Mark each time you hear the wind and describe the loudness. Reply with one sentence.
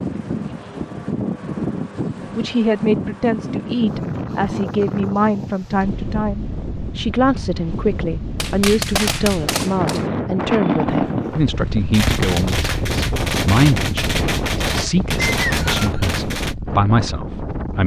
The wind can be heard from 0.0 to 17.8 s, at a steady volume.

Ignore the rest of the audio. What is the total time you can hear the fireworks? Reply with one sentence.
The fireworks can be heard for 8 seconds in total.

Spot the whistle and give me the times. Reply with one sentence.
The whistle can be heard from 15.2 to 16.1 s.